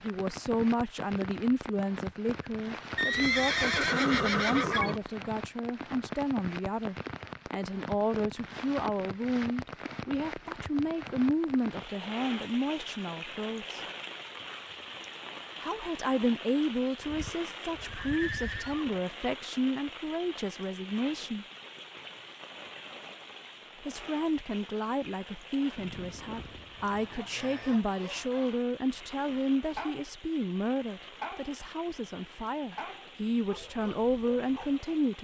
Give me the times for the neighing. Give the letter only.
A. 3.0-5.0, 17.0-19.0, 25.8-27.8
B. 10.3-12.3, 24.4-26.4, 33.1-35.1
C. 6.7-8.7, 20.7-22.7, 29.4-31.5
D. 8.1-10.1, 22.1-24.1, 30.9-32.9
A.